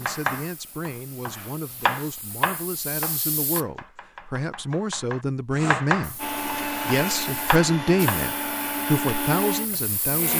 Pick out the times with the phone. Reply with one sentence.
The phone can't be heard in this clip.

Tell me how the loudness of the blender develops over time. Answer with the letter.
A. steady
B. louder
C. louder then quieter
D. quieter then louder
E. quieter
A.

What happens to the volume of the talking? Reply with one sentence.
The loudness of the talking goes up.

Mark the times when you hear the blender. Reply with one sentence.
You can hear the blender from 5.5 to 10.3 s.